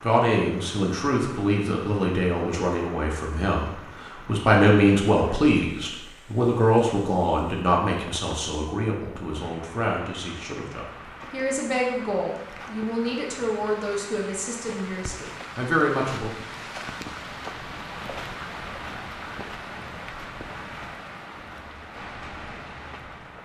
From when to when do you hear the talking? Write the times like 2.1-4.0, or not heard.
0.0-16.3.